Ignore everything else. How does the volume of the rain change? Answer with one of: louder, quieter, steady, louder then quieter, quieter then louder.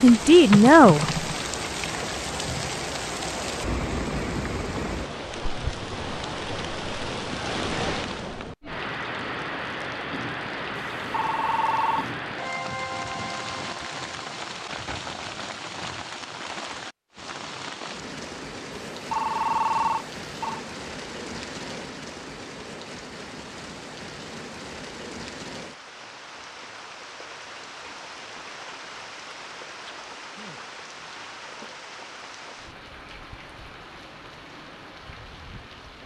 quieter.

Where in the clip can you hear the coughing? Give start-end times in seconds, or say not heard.
not heard.